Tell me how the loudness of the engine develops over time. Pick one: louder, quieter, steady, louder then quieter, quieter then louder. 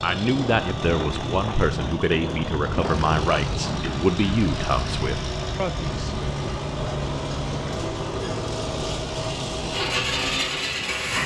louder.